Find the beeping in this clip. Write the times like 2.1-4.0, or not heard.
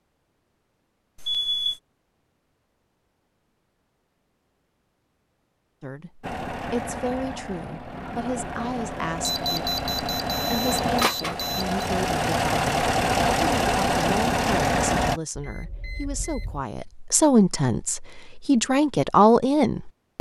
1.1-1.8, 9.2-11.8, 15.3-16.6.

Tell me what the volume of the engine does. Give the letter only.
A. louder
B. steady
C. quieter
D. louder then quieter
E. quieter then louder
A.